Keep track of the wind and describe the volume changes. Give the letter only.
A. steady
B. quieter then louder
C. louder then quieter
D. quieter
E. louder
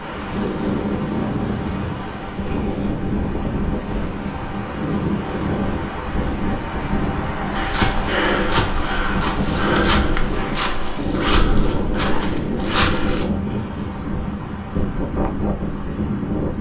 A.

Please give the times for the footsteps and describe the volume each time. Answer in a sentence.
You can hear the footsteps from 7.5 to 13.2 s, at a steady volume.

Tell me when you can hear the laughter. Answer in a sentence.
The laughter can't be heard in this clip.